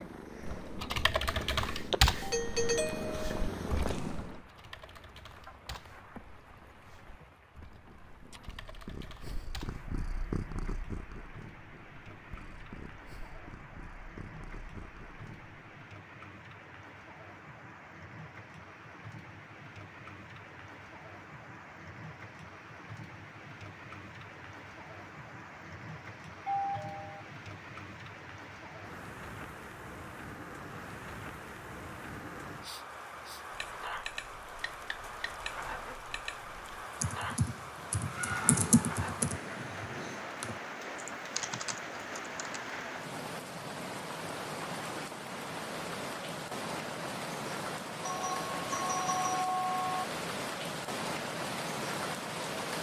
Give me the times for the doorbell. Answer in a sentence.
The doorbell can be heard from 2.2 to 3.5 s, from 26.4 to 27.2 s and from 48.0 to 50.0 s.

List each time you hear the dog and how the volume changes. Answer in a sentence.
The dog can't be heard in this clip.